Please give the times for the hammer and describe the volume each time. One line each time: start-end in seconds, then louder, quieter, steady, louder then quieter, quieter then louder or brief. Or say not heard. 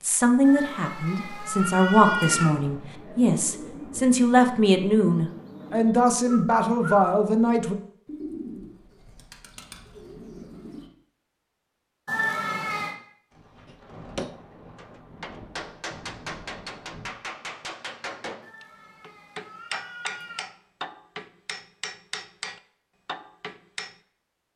13.7-23.9 steady.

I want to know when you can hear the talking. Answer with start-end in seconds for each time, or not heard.
0.0-7.8.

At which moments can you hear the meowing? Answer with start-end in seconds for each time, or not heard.
0.4-2.5, 12.1-12.9, 18.4-20.5.